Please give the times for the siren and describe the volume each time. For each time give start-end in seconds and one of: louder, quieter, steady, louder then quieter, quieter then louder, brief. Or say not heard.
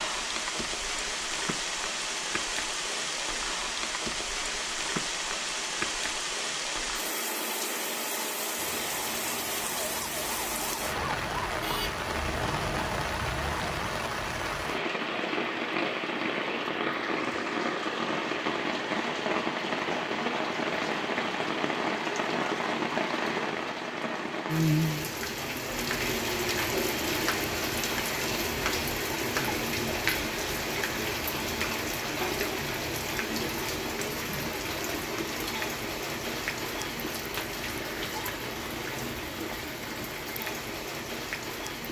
8.6-13.9 louder.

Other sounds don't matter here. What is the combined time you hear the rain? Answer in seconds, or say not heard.
42 s.